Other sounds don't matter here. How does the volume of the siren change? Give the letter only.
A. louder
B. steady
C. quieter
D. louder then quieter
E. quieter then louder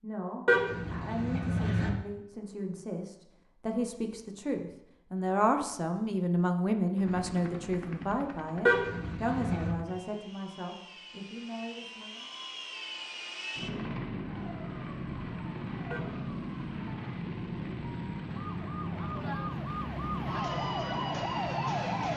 A.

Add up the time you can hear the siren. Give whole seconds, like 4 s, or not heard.
8 s.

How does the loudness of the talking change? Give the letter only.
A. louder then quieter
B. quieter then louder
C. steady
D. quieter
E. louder
A.